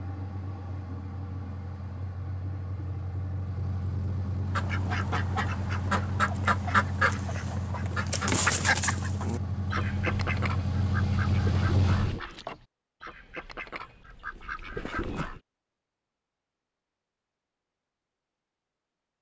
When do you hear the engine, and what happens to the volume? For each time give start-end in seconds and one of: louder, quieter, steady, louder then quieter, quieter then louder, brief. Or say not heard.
0.0-12.2 louder.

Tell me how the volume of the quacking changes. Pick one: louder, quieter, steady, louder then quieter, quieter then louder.
quieter.